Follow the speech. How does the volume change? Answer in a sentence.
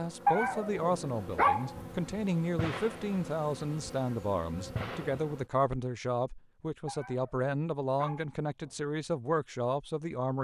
The loudness of the speech stays about the same.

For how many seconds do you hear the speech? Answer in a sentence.
The speech can be heard for 10 seconds in total.